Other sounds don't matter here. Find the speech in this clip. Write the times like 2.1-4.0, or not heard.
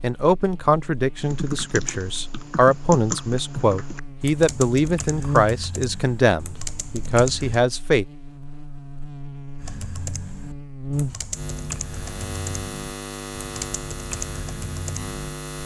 0.0-8.1.